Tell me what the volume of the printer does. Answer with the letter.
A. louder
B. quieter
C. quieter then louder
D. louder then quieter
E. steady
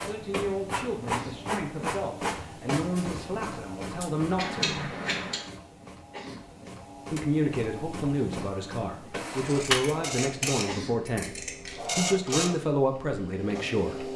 C.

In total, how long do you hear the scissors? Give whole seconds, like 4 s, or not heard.
4 s.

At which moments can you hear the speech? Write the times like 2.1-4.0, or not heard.
0.1-4.8, 7.1-14.1.